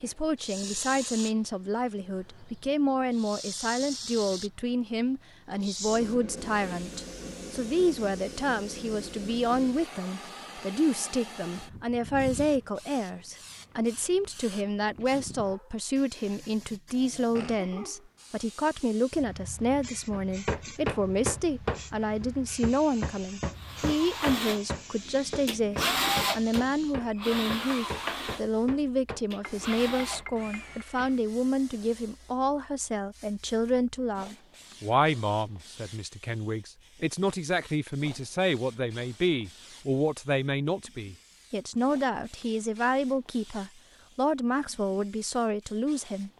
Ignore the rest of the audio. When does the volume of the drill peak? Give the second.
26 s.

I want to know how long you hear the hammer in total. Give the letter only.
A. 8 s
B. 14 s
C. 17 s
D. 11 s
D.